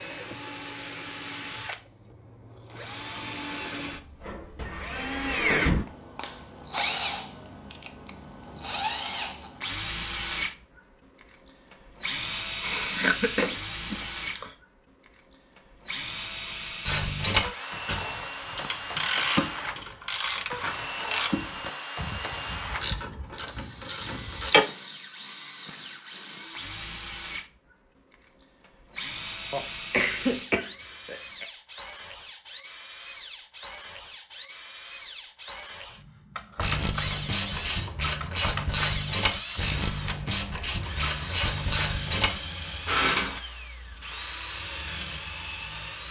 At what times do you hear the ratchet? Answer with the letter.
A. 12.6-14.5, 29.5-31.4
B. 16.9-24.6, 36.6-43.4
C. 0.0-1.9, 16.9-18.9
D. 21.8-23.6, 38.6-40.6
B.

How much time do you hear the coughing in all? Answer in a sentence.
The coughing can be heard for 4 seconds in total.